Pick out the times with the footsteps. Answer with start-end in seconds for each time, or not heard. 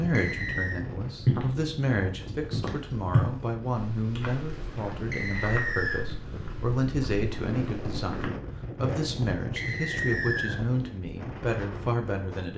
1.1-8.3.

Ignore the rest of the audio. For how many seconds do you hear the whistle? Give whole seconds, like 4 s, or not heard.
3 s.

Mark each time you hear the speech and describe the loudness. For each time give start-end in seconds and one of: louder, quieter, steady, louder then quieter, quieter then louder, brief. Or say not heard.
0.0-12.5 steady.